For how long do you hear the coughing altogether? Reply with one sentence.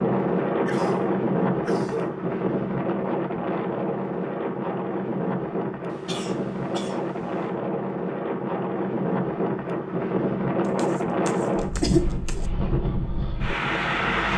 The coughing can be heard for 5 seconds in total.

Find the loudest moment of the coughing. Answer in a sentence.
The loudest moment of the coughing is at 12 seconds.